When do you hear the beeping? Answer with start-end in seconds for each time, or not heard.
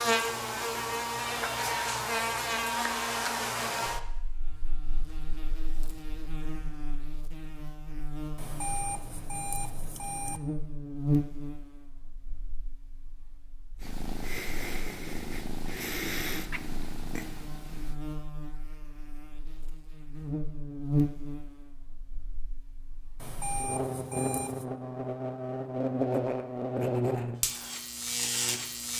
8.3-10.4, 23.1-24.6.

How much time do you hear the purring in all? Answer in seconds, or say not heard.
4 s.